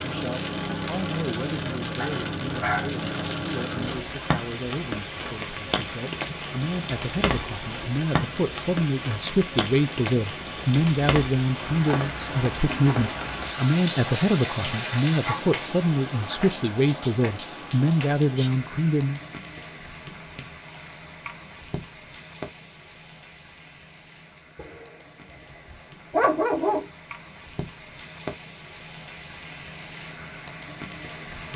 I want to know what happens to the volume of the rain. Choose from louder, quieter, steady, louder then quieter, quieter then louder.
quieter.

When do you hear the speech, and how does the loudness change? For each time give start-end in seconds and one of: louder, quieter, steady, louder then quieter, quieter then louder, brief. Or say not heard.
0.0-19.2 louder.